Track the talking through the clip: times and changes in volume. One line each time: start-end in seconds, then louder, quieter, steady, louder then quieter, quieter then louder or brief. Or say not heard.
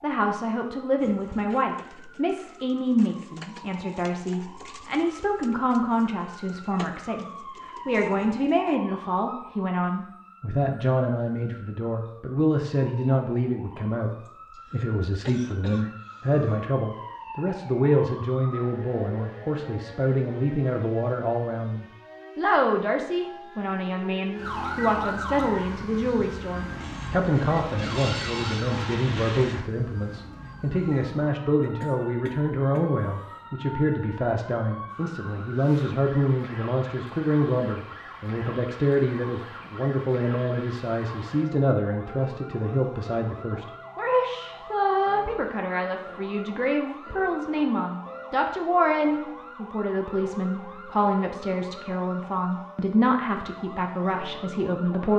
0.0-55.1 steady.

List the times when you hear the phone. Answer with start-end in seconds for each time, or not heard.
not heard.